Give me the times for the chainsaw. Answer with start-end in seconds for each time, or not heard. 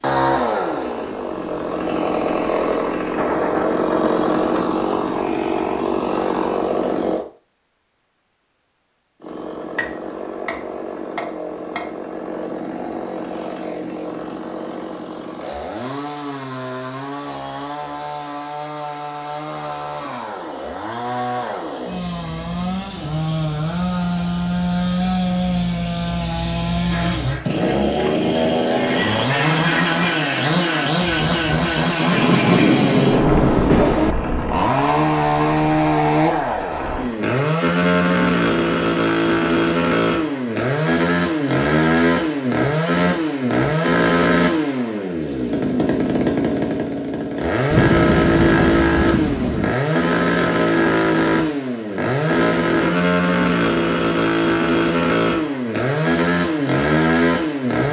0.0-7.2, 9.2-57.8.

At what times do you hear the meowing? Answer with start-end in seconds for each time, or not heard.
not heard.